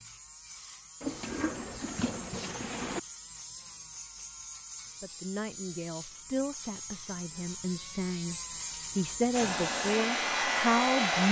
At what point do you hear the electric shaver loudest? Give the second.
11 s.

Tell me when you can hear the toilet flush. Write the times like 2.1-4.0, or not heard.
1.0-3.0.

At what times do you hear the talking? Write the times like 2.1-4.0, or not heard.
5.0-8.3, 8.9-11.2.